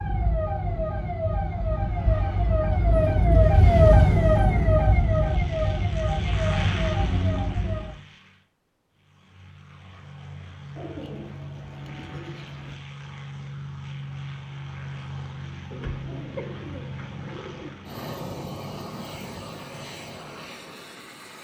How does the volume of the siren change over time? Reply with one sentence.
The loudness of the siren goes up, then down.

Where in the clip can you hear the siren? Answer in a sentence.
The siren can be heard from 0.0 to 8.0 s.